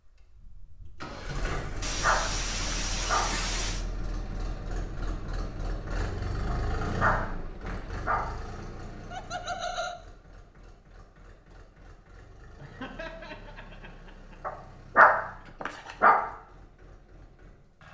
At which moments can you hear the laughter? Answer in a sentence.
The laughter can be heard from 1.8 to 3.9 s, from 9.1 to 9.9 s and from 12.6 to 14.4 s.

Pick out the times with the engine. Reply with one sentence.
The engine can be heard from 0.1 to 17.8 s.